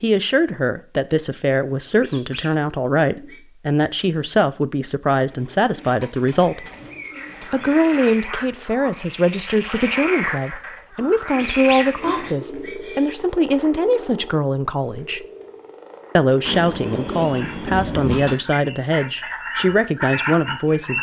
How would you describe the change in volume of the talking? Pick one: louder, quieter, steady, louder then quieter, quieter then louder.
steady.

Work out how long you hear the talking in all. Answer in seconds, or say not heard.
19 s.